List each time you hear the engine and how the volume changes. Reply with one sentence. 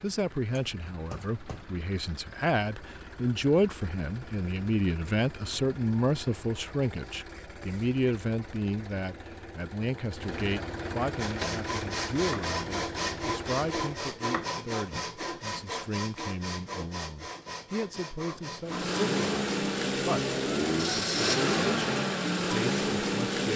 The engine can be heard from 0.0 to 14.1 s, getting louder; and from 18.6 to 23.5 s, at a steady volume.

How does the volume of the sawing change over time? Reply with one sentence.
The loudness of the sawing goes down.